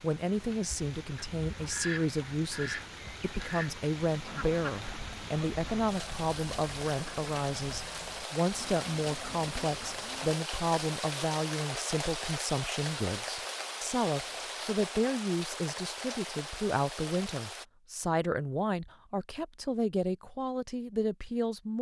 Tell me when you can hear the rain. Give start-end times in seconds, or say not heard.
0.0-17.6.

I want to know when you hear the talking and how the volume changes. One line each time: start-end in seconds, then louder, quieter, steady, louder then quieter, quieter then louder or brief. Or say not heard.
0.0-21.7 steady.